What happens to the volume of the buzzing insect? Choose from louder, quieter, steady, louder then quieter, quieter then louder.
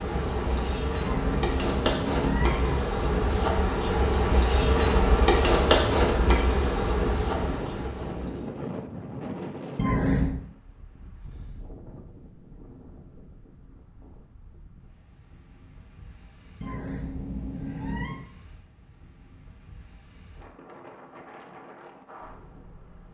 louder then quieter.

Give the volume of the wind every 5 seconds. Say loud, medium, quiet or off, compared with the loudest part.
loud, loud, quiet, quiet, quiet.